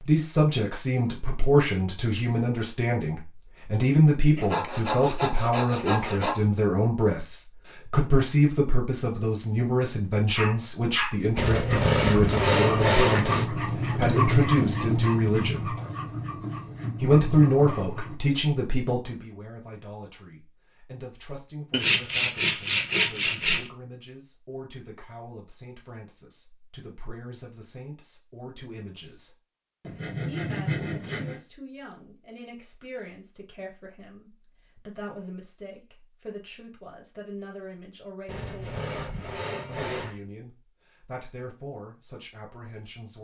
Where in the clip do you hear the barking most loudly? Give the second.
14 s.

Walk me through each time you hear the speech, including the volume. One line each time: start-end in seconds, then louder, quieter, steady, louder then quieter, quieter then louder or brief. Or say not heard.
0.0-15.8 steady
17.0-29.4 quieter
30.2-43.1 steady.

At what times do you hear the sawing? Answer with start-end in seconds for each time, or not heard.
4.3-6.5, 11.3-13.4, 21.7-23.7, 29.8-31.4, 38.2-40.1.